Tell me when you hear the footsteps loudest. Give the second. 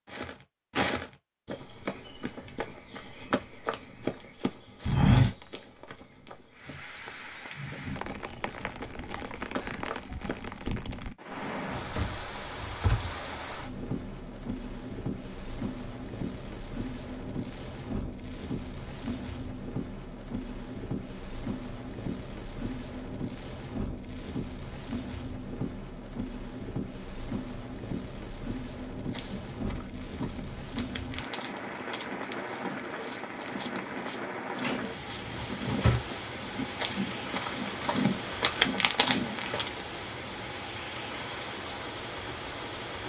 5 s.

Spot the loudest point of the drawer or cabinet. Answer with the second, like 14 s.
36 s.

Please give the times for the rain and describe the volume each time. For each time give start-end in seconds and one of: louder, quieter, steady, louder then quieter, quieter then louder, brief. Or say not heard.
6.5-43.0 steady.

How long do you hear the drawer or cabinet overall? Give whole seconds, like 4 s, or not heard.
3 s.